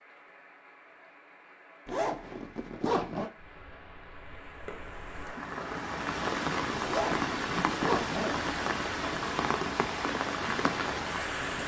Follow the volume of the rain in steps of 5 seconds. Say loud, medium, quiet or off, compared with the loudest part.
quiet, loud, loud.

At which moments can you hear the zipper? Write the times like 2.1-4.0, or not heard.
1.9-3.3, 6.8-8.6.